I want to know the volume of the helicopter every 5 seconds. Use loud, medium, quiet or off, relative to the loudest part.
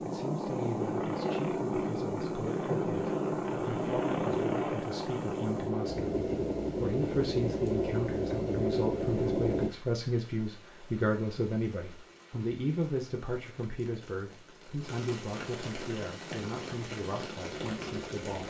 loud, loud, off, quiet.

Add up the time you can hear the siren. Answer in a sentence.
The siren can't be heard in this clip.